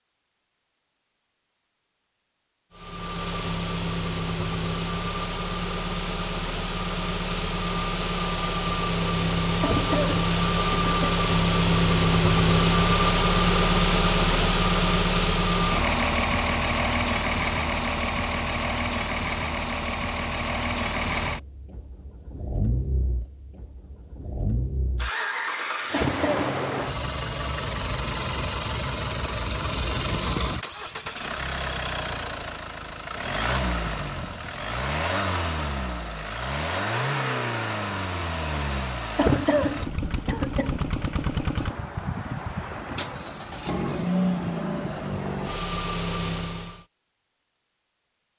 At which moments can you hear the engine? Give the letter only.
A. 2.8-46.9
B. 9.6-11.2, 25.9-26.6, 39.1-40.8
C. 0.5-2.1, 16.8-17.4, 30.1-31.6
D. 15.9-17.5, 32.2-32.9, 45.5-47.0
A.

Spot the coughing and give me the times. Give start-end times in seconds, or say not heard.
9.6-11.2, 25.9-26.6, 39.1-40.8.